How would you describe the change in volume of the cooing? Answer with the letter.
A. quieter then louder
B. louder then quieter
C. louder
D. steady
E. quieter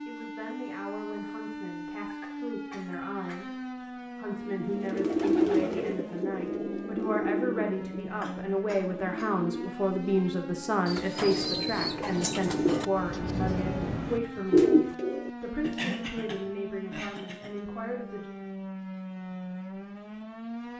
A.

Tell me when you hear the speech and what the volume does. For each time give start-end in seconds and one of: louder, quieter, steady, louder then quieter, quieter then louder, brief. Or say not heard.
0.1-18.3 louder then quieter.